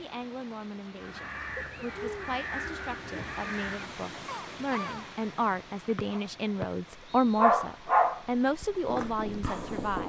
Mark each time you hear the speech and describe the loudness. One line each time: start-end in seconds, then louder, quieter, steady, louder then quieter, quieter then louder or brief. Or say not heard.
0.0-10.0 louder.